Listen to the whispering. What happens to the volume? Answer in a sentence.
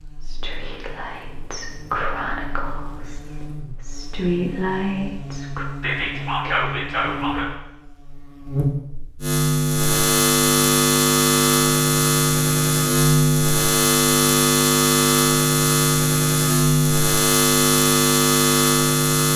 The volume of the whispering goes up.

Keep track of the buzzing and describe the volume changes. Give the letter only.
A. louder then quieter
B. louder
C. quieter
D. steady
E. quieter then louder
B.